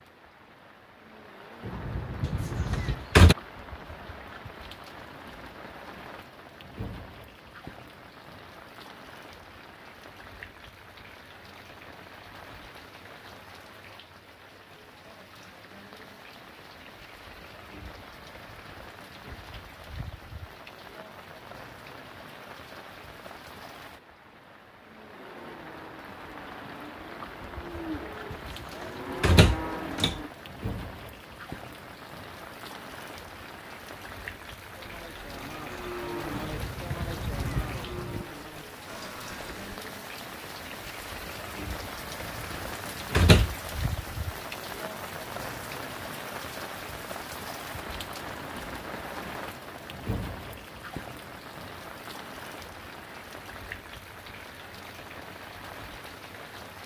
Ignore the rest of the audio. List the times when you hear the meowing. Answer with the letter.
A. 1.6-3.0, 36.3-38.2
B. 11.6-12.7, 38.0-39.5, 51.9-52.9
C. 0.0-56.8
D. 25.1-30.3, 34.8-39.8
A.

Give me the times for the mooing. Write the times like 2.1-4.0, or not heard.
25.1-30.3, 34.8-39.8.